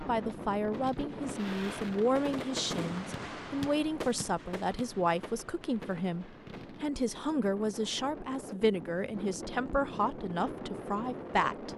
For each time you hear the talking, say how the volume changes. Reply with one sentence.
You can hear the talking from 0.0 to 11.7 s, at a steady volume.